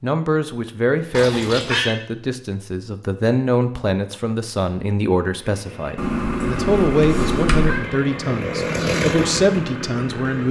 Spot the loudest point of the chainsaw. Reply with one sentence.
The volume of the chainsaw peaks at 9 seconds.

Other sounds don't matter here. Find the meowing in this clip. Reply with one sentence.
You can hear the meowing from 1.1 to 1.9 s and from 6.0 to 7.8 s.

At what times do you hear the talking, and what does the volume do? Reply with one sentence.
The talking can be heard from 0.0 to 10.4 s, at a steady volume.